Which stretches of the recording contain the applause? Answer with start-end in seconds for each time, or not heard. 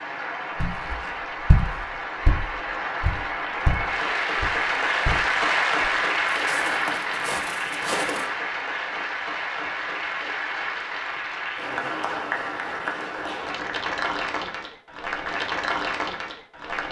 0.0-16.8.